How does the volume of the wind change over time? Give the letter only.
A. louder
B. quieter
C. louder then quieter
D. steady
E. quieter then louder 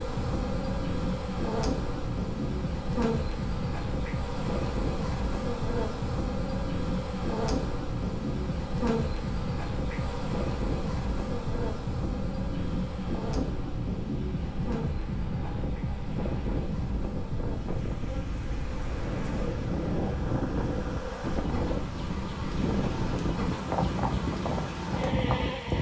D.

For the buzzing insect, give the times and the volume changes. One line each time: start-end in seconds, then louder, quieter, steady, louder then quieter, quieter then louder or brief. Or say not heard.
0.0-25.7 quieter then louder.